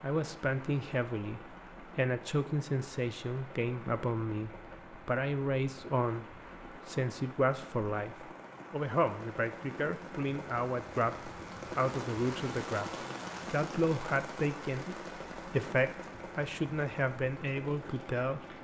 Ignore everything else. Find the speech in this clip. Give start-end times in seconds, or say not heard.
0.0-6.2, 6.8-18.4.